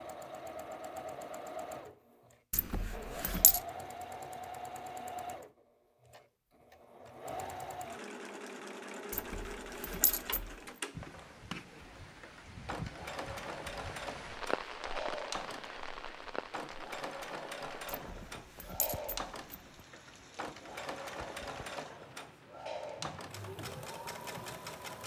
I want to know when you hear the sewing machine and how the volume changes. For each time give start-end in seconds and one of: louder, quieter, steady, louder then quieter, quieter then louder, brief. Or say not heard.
0.0-25.0 steady.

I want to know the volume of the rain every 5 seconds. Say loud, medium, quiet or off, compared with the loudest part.
off, off, loud, loud, medium.